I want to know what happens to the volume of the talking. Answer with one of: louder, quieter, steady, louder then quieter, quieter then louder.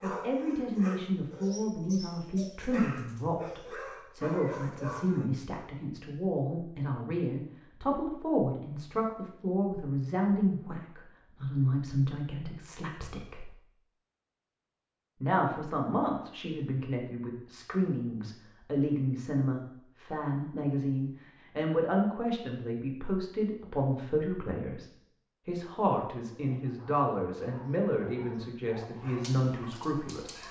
steady.